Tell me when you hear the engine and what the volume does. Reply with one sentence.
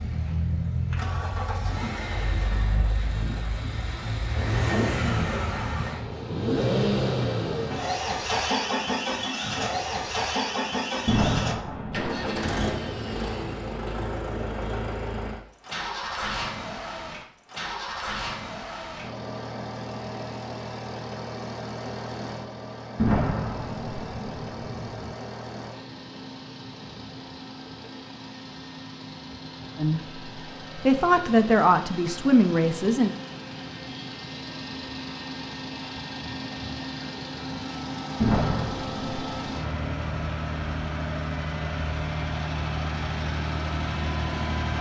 The engine can be heard from 0.0 to 44.7 s, getting quieter then louder.